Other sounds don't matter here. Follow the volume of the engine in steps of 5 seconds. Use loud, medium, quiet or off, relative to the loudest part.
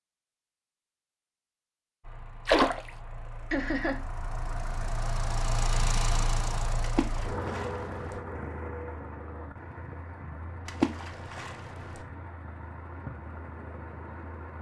medium, loud, medium.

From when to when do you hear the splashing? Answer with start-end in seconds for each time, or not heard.
2.5-2.9, 6.8-8.2, 10.7-12.0.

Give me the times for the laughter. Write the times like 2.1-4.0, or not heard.
3.5-4.0.